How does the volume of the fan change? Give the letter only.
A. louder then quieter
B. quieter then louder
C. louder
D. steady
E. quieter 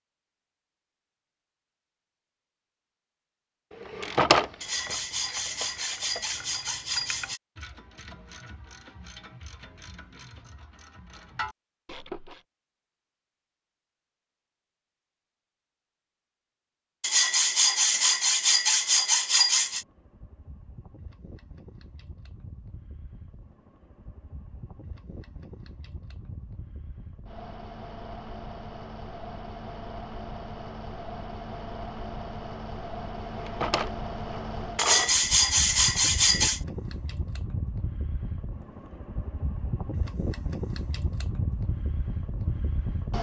C.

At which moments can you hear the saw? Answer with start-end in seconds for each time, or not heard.
4.6-7.4, 17.0-19.9, 34.8-36.6.